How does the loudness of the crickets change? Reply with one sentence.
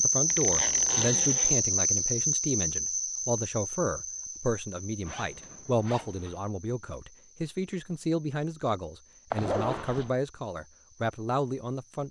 The volume of the crickets goes down.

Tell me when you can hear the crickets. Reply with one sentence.
You can hear the crickets from 0.0 to 12.0 s.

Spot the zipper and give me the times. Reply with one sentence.
The zipper can be heard from 0.3 to 1.7 s, from 5.0 to 6.4 s and from 9.3 to 10.1 s.